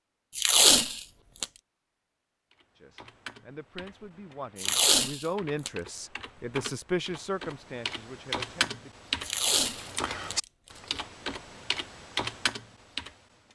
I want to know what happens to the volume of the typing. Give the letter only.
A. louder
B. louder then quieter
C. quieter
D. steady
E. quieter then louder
A.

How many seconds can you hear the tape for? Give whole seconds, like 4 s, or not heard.
4 s.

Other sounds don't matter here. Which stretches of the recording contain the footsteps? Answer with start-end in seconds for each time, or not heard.
not heard.